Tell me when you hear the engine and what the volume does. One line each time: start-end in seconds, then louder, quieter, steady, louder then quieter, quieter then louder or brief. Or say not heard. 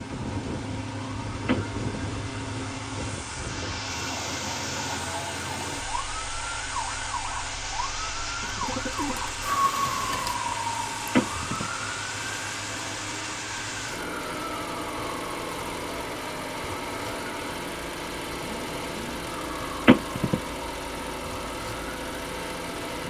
0.0-23.0 steady.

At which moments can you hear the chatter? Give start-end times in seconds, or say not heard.
not heard.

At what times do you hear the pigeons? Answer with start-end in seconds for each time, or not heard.
8.4-10.4.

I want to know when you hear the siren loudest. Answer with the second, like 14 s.
10 s.